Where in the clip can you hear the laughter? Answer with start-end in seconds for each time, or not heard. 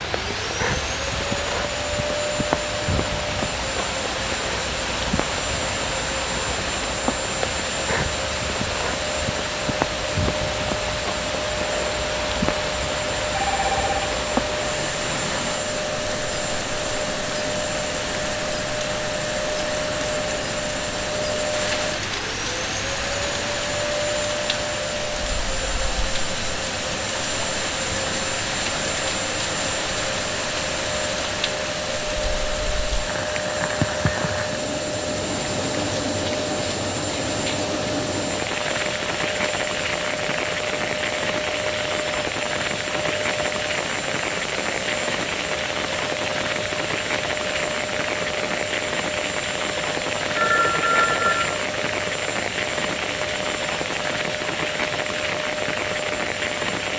not heard.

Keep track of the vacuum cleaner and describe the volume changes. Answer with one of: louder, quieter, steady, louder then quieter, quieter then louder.
steady.